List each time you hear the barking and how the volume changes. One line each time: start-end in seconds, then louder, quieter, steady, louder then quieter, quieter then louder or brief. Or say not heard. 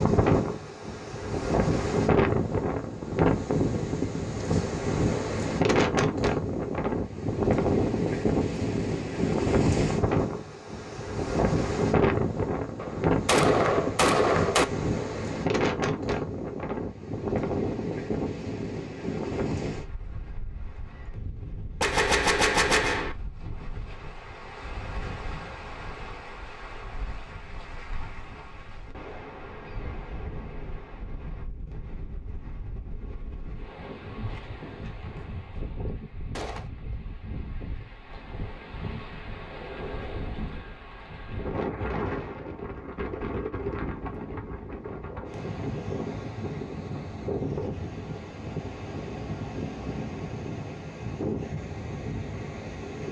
not heard.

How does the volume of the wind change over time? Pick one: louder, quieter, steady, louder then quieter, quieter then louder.
quieter then louder.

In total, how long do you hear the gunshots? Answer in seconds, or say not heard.
4 s.